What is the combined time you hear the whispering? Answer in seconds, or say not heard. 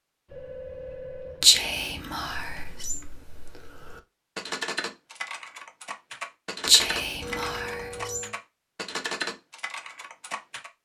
3 s.